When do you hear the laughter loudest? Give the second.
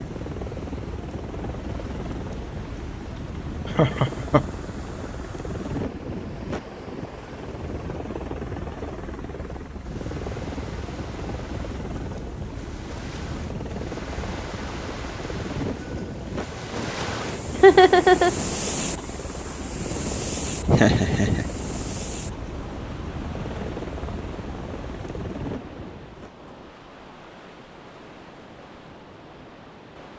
18 s.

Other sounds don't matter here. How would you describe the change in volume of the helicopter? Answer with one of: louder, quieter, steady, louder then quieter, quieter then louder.
steady.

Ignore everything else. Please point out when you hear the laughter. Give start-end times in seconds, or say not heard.
3.8-4.5, 17.5-18.4, 20.6-21.5.